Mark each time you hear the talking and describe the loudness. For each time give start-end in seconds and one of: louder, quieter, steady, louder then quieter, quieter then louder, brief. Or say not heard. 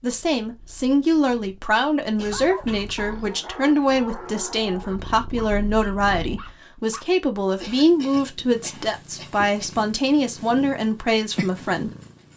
0.0-11.9 steady.